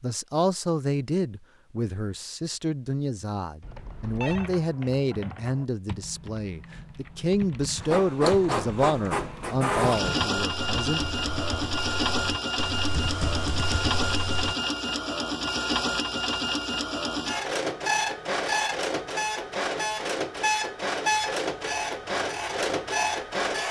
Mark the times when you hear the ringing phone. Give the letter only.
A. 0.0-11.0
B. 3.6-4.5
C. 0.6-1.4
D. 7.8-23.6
B.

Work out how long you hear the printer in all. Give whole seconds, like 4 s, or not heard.
16 s.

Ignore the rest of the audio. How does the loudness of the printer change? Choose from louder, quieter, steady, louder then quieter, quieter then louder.
steady.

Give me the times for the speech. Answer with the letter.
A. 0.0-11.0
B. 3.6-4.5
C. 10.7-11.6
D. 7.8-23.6
A.